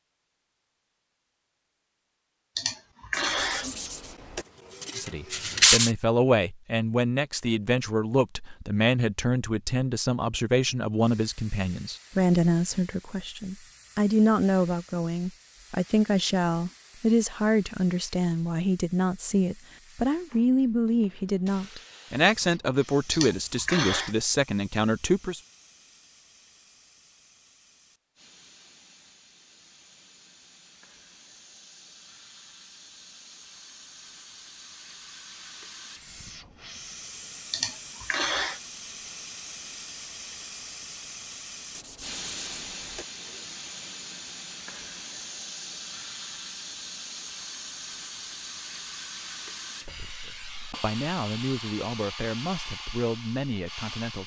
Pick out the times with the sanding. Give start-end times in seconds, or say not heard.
3.1-5.9, 41.7-43.5.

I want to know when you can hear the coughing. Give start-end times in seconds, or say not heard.
2.5-3.9, 23.1-24.1, 37.5-38.6.